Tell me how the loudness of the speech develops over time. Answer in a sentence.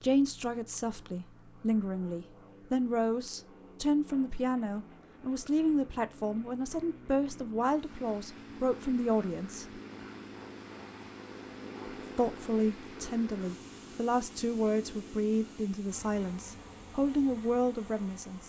The volume of the speech stays about the same.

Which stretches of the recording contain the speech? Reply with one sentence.
The speech can be heard from 0.0 to 9.7 s and from 12.2 to 18.4 s.